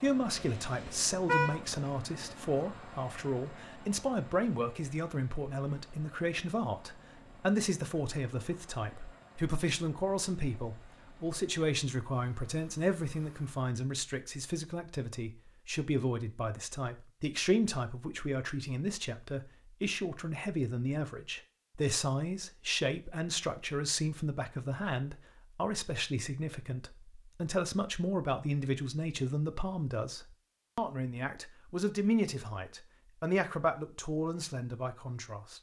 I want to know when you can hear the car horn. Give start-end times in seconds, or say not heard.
0.4-1.6.